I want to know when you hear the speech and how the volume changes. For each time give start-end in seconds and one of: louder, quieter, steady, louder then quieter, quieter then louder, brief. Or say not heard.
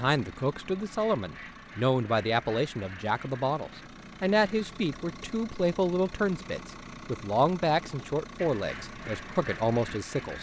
0.0-10.3 steady.